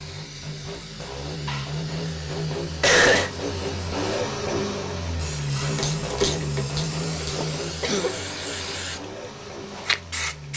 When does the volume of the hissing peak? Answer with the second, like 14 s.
10 s.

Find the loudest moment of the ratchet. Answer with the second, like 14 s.
6 s.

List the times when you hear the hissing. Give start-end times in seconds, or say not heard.
0.0-10.5.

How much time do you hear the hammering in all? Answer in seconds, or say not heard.
not heard.